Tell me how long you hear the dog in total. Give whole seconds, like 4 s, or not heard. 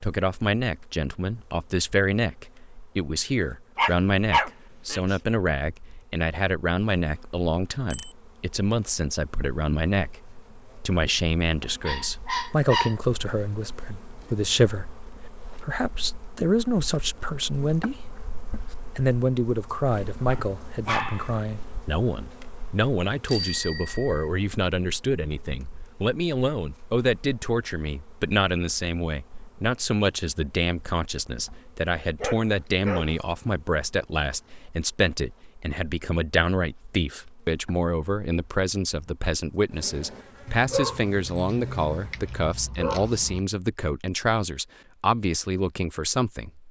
8 s.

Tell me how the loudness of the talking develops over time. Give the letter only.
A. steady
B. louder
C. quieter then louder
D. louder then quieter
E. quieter
A.